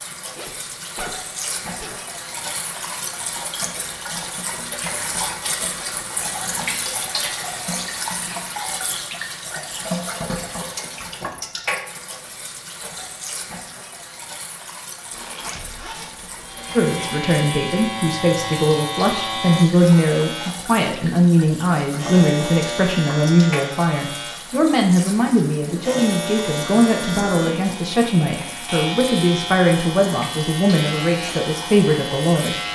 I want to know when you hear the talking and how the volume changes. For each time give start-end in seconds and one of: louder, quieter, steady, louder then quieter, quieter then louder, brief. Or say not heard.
16.8-32.5 steady.